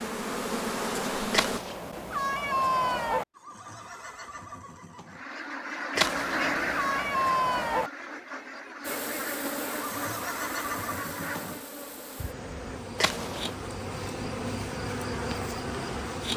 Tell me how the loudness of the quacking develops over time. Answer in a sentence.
The volume of the quacking goes down.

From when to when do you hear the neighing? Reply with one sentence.
The neighing can be heard from 3.4 to 5.2 s and from 9.7 to 11.6 s.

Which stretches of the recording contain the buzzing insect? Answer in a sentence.
The buzzing insect can be heard from 0.0 to 1.6 s and from 8.8 to 16.3 s.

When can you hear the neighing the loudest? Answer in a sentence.
The loudest moment of the neighing is at 11 seconds.